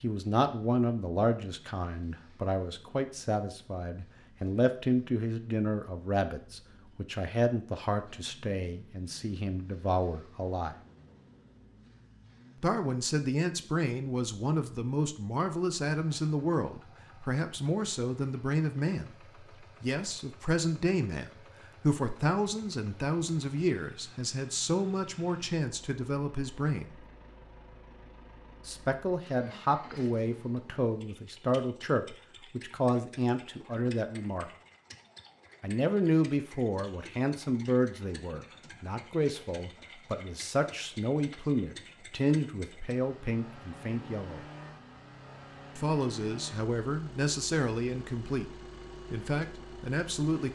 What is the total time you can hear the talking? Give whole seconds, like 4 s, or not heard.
45 s.